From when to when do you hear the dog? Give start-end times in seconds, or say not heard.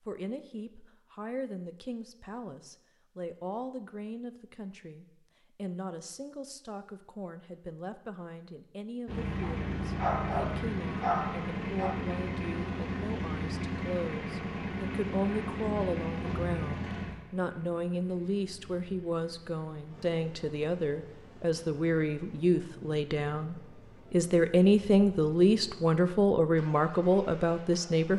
9.4-11.9.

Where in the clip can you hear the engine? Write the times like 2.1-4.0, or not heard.
9.1-28.1.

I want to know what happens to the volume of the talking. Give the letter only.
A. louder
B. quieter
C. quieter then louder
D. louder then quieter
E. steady
A.